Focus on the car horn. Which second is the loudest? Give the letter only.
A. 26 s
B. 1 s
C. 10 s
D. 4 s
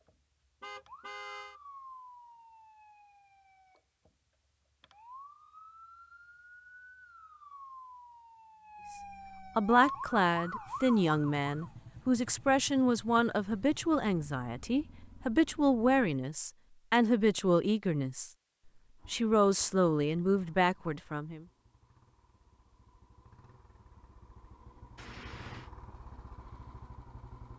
B.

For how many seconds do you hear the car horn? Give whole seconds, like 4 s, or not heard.
2 s.